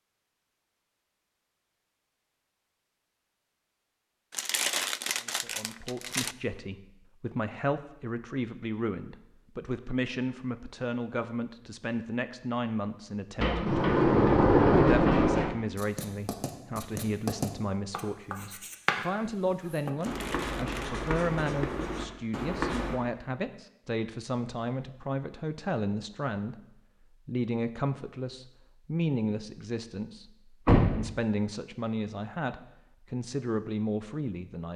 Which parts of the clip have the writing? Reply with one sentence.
You can hear the writing from 15.8 to 23.0 s.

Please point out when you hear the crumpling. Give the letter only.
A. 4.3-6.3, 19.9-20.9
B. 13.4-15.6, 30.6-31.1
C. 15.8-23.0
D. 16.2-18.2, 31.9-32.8
A.